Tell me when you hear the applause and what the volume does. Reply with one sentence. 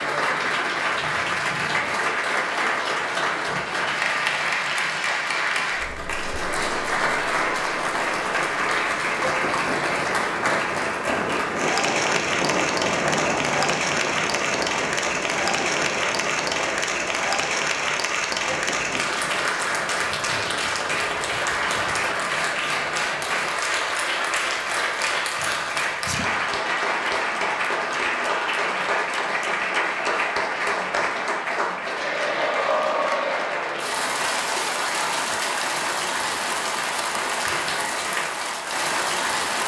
The applause can be heard from 0.0 to 39.6 s, at a steady volume.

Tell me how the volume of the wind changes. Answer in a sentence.
The volume of the wind goes up, then down.